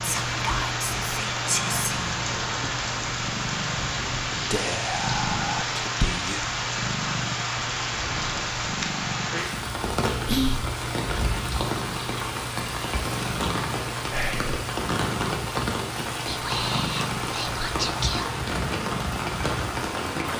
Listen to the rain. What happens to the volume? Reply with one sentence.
The loudness of the rain stays about the same.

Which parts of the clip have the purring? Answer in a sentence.
The purring can be heard from 0.0 to 20.3 s.